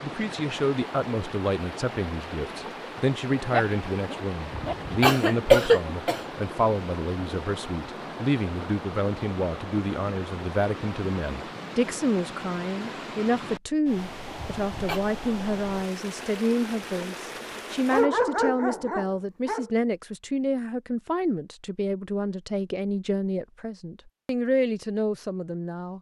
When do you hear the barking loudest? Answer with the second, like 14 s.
18 s.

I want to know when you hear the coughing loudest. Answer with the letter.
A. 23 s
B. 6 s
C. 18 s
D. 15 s
B.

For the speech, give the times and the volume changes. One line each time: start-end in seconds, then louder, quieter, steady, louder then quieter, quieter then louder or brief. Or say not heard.
0.0-25.9 steady.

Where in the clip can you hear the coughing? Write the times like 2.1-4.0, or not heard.
4.5-6.2, 14.3-15.0.